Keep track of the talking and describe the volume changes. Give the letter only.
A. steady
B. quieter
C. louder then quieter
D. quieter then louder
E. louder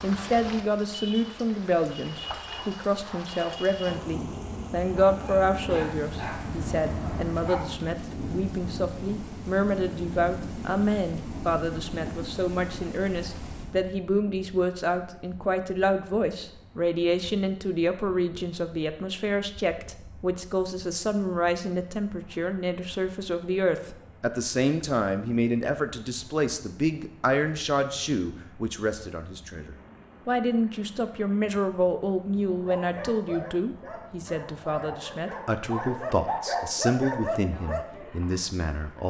A.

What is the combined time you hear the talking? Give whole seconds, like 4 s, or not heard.
39 s.